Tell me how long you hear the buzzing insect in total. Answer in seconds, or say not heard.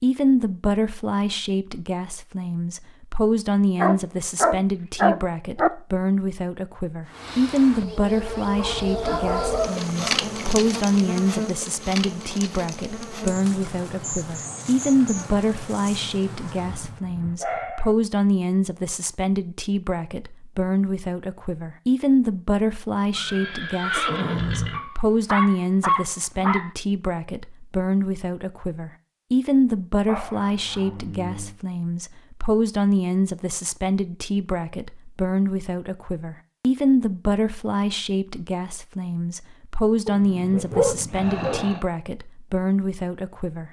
10 s.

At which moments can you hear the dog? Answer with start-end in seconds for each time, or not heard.
3.8-5.7, 8.6-9.9, 16.6-17.9, 24.7-26.7, 30.1-31.6, 40.0-41.9.